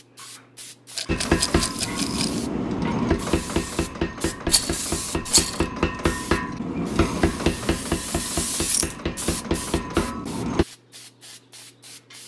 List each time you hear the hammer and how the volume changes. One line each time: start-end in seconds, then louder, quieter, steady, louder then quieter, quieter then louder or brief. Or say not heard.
1.1-10.7 steady.